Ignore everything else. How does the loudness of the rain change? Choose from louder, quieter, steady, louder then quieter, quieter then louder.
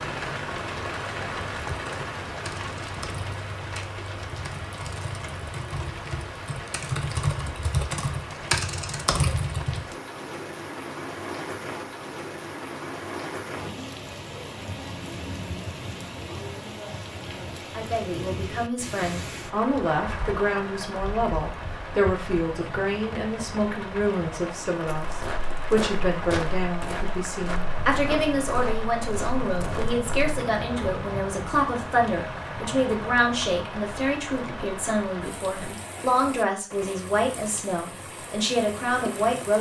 steady.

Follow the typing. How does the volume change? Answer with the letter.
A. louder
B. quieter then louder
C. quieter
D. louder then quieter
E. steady
A.